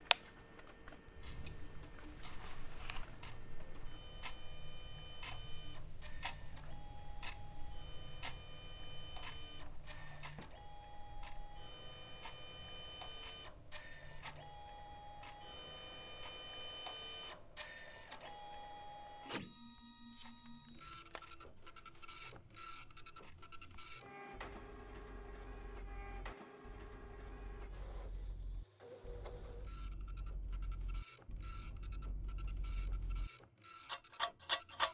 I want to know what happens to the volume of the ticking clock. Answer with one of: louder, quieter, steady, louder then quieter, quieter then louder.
quieter then louder.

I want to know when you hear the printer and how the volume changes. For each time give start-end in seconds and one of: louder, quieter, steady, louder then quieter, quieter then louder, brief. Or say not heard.
0.0-34.8 louder then quieter.